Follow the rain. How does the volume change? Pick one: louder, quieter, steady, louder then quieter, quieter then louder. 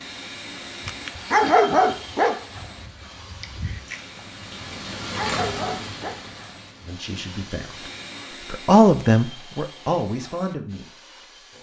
louder then quieter.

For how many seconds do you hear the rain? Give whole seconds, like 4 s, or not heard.
8 s.